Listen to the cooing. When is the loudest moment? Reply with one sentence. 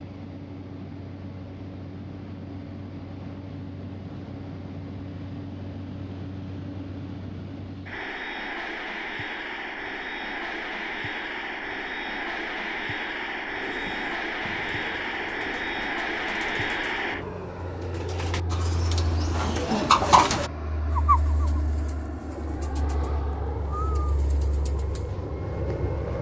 The loudest moment of the cooing is at 20 seconds.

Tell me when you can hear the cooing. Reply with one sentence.
The cooing can be heard from 13.6 to 25.1 s.